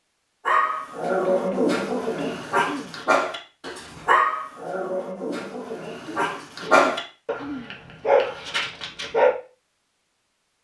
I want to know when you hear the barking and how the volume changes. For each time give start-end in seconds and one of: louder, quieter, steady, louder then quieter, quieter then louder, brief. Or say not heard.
0.5-9.3 steady.